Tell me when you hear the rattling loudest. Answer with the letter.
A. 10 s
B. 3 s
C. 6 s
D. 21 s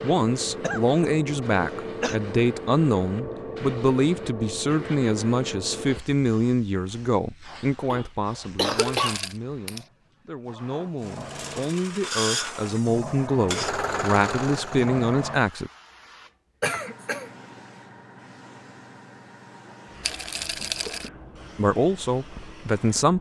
D.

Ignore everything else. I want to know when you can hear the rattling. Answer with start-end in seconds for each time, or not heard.
8.8-9.4, 20.0-21.1.